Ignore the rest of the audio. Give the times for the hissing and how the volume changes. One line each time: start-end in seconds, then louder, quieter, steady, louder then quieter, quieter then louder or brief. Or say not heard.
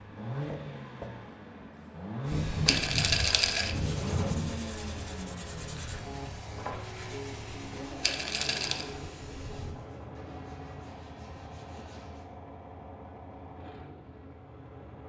2.2-9.8 quieter.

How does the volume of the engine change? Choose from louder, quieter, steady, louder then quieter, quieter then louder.
quieter.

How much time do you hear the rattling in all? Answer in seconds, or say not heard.
2 s.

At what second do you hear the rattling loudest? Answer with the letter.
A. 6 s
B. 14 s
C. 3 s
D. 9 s
C.